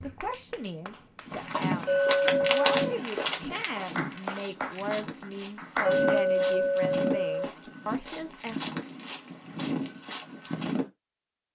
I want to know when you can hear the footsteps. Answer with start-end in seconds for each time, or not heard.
1.2-10.8.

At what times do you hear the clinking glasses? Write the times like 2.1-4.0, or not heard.
1.9-3.0, 5.8-7.5.